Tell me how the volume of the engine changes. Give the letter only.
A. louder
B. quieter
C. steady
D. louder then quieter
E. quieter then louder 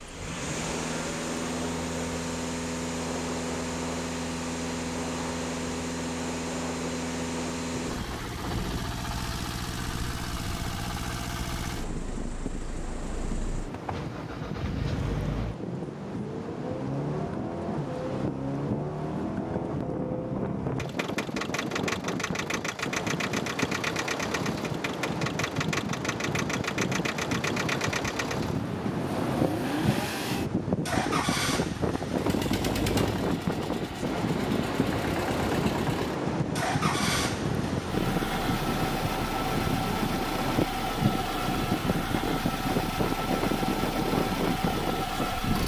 C.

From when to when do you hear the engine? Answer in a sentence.
The engine can be heard from 0.0 to 45.6 s.